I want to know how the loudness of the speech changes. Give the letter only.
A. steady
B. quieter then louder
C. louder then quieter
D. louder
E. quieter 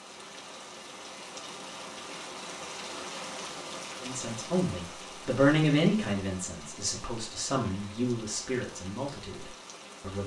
E.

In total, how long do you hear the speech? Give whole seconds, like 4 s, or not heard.
6 s.